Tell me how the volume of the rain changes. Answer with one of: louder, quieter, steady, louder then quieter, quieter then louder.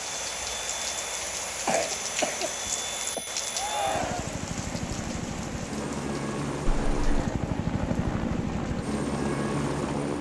quieter.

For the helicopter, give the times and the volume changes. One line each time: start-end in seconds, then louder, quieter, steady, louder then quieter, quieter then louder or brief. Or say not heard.
0.0-10.1 louder.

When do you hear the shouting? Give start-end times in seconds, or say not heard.
3.5-4.4.